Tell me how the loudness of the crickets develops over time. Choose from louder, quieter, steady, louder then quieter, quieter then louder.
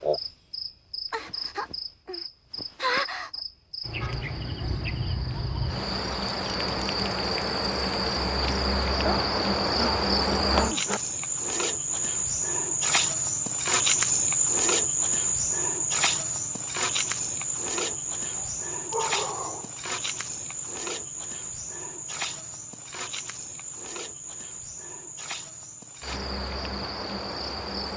louder then quieter.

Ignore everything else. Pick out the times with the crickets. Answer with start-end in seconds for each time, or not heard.
0.0-27.9.